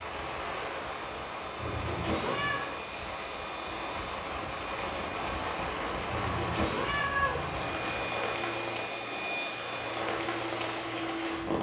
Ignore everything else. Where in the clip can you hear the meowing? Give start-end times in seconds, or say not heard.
1.6-2.6, 6.0-8.1.